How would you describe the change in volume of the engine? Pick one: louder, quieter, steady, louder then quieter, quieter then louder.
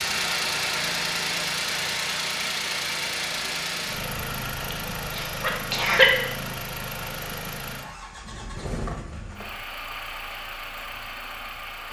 quieter.